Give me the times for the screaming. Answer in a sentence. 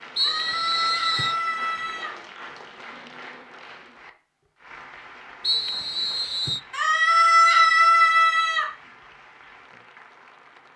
The screaming can be heard from 0.1 to 2.1 s and from 6.7 to 8.7 s.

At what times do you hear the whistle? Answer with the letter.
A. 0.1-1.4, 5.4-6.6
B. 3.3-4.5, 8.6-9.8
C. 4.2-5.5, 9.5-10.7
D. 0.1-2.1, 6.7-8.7
A.